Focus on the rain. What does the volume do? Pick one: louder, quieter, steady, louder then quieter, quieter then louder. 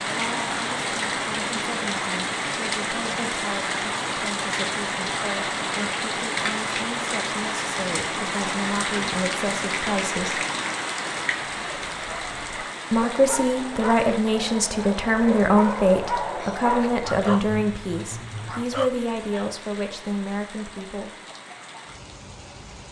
quieter.